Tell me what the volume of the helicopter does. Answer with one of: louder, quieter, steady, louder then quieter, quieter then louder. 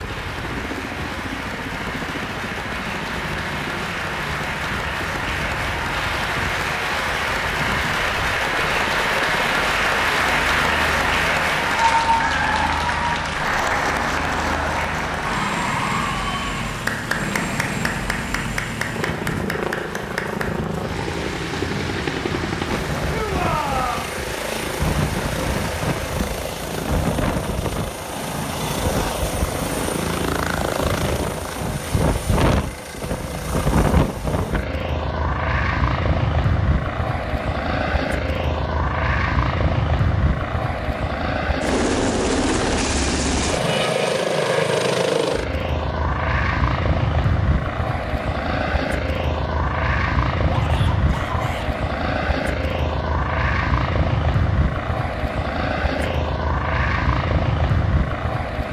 louder.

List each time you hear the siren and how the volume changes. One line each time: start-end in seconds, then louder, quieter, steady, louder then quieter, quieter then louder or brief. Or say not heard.
not heard.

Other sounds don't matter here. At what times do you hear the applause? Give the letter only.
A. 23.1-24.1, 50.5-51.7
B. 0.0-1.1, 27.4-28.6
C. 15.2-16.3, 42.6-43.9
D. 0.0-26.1
D.